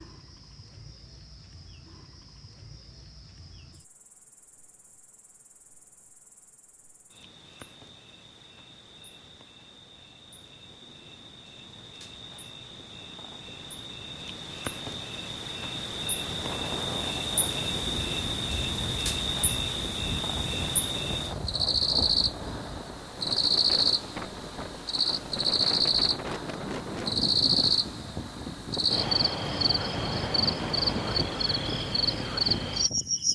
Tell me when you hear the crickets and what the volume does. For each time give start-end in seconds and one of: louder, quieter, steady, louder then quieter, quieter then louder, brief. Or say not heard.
0.0-33.3 louder.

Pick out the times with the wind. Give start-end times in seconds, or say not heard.
16.2-33.3.